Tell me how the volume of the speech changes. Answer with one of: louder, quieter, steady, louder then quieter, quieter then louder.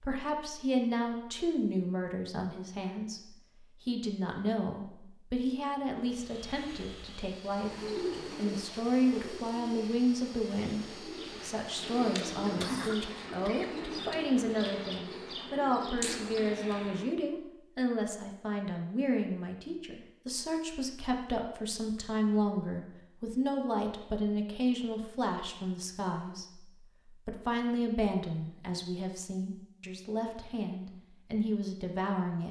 steady.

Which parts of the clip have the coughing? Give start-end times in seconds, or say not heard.
12.6-14.1.